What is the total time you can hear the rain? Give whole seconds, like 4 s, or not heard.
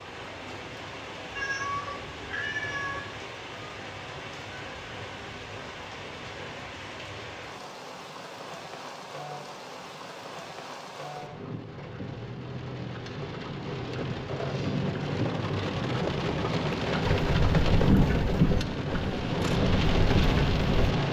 21 s.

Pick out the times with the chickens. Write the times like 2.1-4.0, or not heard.
17.0-20.9.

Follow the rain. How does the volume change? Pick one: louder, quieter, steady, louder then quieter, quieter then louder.
louder.